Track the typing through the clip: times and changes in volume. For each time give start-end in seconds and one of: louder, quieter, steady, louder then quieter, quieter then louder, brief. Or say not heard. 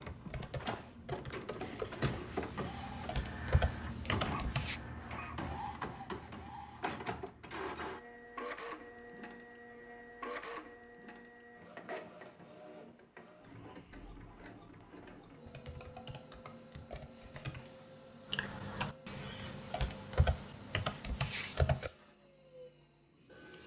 0.0-4.8 louder
15.4-21.9 louder then quieter.